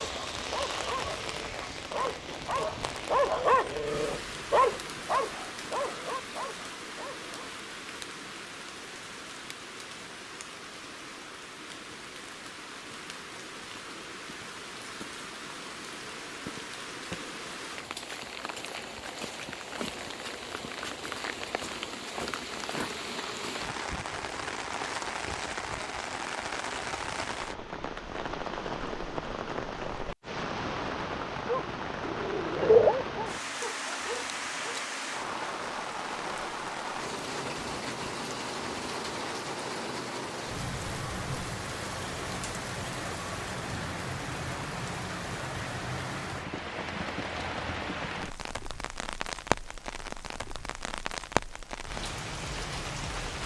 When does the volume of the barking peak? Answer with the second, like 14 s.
33 s.